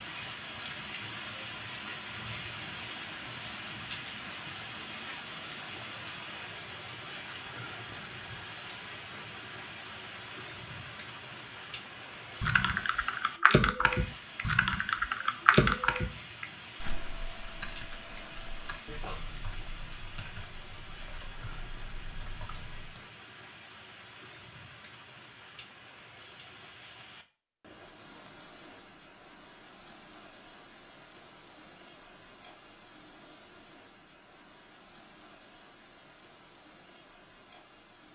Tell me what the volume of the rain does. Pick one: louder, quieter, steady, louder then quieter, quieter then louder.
quieter.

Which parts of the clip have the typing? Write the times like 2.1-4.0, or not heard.
12.4-23.0.